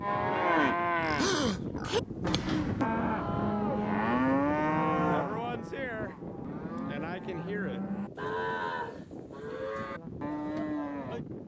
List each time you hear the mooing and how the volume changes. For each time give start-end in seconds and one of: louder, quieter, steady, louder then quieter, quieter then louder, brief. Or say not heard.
0.0-11.2 quieter.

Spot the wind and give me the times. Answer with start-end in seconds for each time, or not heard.
0.0-11.4.